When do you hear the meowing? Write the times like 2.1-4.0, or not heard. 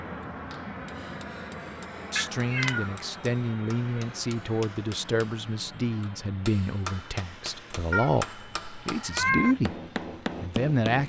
2.1-2.9, 7.9-9.6.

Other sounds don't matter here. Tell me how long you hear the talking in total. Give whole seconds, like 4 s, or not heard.
8 s.